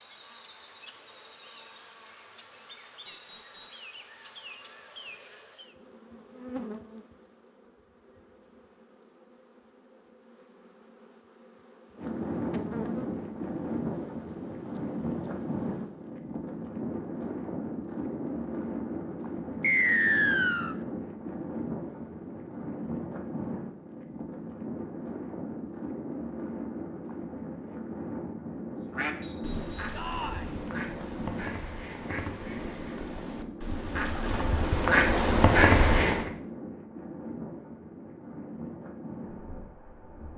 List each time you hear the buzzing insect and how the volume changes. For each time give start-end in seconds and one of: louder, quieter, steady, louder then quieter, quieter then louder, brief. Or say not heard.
0.0-16.1 steady.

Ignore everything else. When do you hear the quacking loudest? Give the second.
36 s.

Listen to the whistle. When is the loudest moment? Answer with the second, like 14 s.
20 s.